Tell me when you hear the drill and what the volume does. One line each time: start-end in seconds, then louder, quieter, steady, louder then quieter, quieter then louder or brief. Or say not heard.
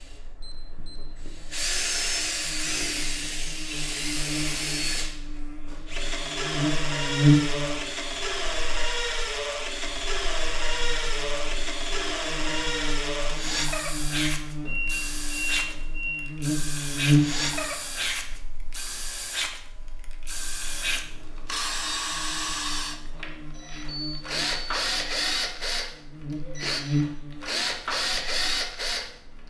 0.0-29.4 steady.